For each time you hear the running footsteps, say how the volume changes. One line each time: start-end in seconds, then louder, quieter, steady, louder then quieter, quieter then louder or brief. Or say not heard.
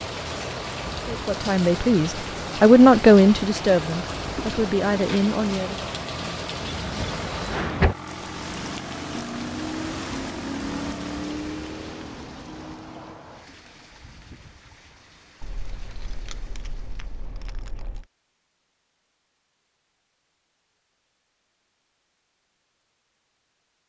not heard.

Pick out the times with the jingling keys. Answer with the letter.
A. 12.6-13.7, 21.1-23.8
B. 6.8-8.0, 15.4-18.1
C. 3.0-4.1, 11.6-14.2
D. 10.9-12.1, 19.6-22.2
B.